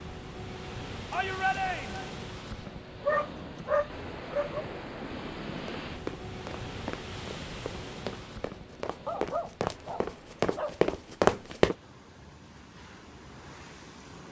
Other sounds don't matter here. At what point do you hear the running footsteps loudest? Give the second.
11 s.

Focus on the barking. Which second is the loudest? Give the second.
3 s.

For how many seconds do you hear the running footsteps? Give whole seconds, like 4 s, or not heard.
6 s.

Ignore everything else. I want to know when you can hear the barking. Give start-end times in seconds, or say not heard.
2.6-4.7, 9.1-10.8.